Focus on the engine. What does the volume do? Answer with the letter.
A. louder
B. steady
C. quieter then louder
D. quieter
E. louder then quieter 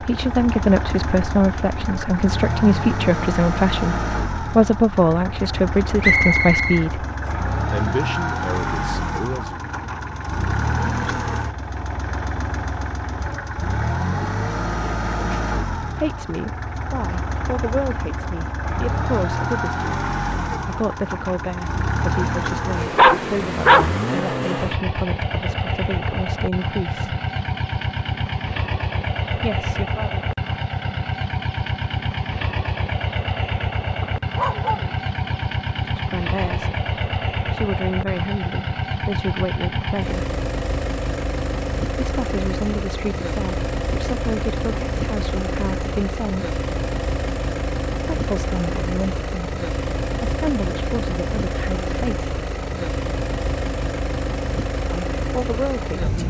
B.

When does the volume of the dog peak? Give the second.
23 s.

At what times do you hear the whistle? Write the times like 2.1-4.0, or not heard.
6.0-7.3.